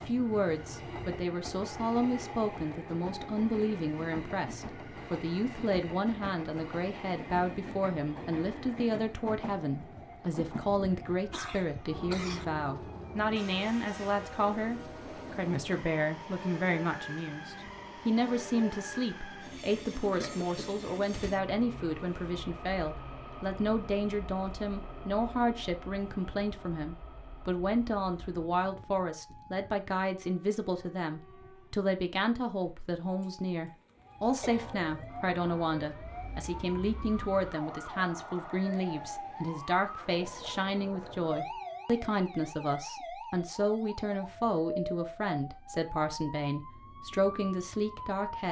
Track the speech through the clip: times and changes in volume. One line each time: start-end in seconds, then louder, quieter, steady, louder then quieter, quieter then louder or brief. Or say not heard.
0.1-48.4 steady.